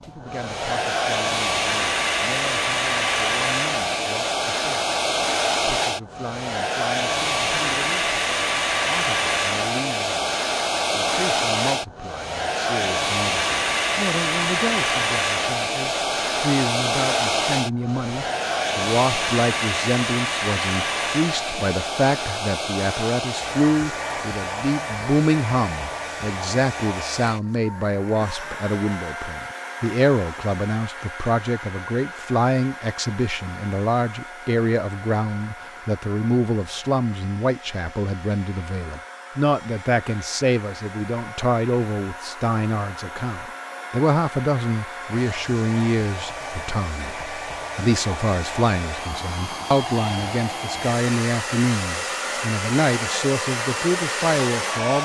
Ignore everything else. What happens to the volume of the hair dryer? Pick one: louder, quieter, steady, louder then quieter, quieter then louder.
quieter then louder.